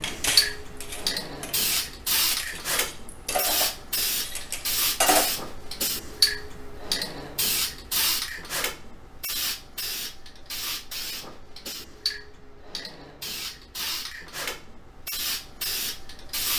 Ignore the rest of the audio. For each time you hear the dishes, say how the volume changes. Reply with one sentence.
You can hear the dishes from 0.0 to 5.3 s, getting louder then quieter.